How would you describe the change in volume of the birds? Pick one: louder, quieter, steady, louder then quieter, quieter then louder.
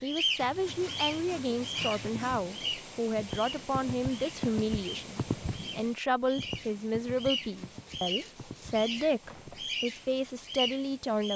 quieter then louder.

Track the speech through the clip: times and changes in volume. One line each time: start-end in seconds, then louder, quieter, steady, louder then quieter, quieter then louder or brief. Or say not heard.
0.0-11.3 steady.